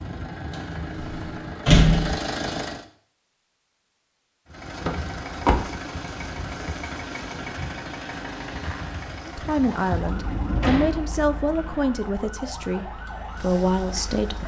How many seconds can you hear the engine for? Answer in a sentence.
The engine can be heard for 13 seconds in total.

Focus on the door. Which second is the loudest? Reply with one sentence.
The volume of the door peaks at 2 seconds.